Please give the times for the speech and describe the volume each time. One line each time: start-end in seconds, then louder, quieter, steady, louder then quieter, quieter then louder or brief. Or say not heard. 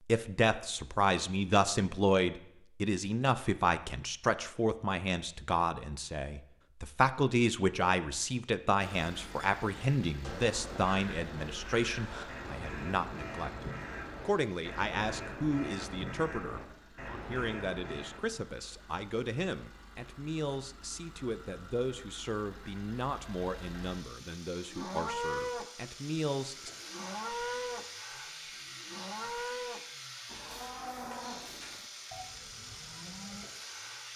0.1-26.7 quieter.